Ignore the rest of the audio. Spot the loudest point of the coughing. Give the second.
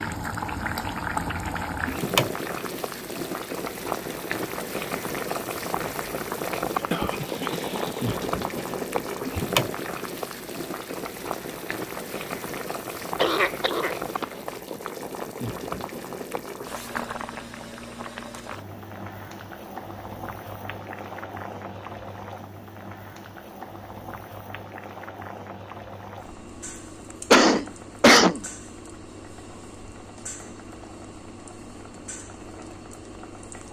28 s.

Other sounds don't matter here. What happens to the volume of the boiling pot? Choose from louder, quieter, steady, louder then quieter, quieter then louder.
quieter.